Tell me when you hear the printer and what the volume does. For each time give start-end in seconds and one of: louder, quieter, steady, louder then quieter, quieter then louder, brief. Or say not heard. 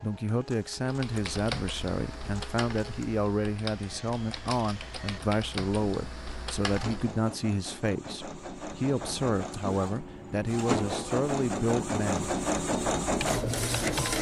0.0-14.1 louder.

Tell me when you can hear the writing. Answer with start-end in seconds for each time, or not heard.
not heard.